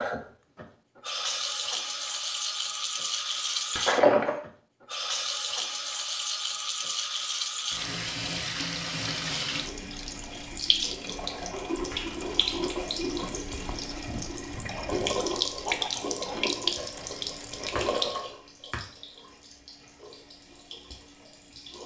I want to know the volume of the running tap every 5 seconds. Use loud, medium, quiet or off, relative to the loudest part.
loud, loud, loud, loud, quiet.